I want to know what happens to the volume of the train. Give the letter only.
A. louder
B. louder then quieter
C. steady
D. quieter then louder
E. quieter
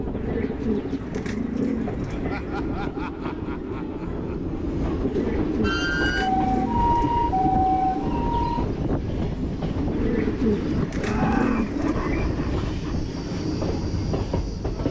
C.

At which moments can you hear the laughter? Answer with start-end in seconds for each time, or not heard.
2.1-4.5, 10.9-12.9.